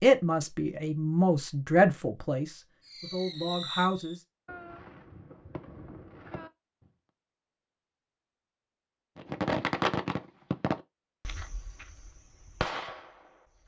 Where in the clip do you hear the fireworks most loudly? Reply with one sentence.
The volume of the fireworks peaks at 10 seconds.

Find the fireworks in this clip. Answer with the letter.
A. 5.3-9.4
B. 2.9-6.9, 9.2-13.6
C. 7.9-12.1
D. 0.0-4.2
B.